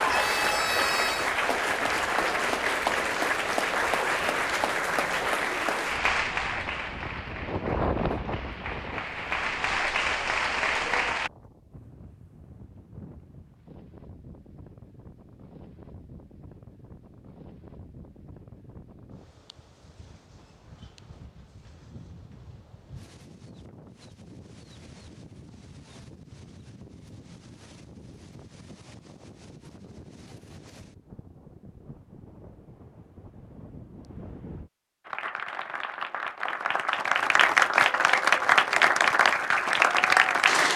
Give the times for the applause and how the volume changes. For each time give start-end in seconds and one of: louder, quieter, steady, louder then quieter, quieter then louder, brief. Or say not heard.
0.0-11.3 quieter then louder
35.0-40.7 louder.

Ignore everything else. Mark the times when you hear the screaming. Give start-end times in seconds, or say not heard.
0.1-1.4.